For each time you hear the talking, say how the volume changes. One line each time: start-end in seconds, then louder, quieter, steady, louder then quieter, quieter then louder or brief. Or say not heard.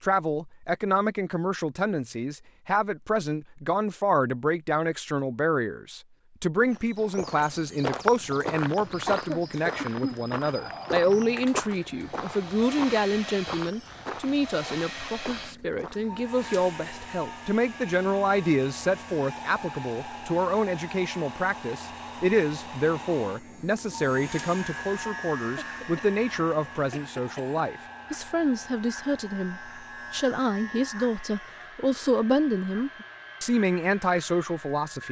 0.0-35.0 steady.